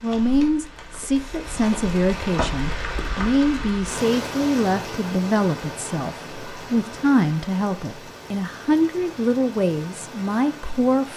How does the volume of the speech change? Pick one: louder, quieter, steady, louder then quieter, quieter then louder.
steady.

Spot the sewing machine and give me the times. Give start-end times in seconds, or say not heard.
not heard.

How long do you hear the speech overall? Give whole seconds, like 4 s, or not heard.
11 s.